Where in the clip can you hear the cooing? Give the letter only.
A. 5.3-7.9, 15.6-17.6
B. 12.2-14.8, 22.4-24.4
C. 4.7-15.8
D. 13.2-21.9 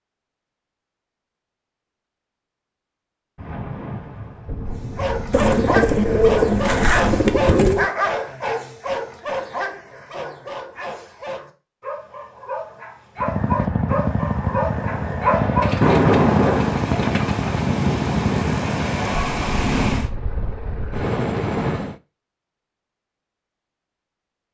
A.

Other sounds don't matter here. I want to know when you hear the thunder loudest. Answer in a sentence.
The loudest moment of the thunder is at 16 seconds.